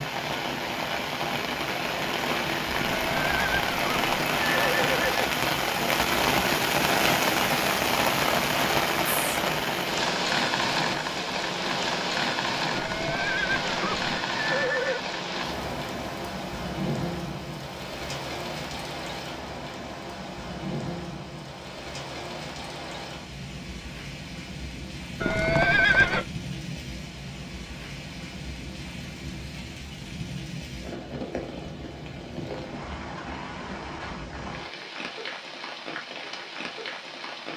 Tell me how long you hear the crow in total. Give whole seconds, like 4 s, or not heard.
not heard.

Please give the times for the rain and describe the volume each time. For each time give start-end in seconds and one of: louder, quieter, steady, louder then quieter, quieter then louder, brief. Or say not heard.
0.0-37.5 quieter.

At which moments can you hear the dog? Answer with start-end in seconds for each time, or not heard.
not heard.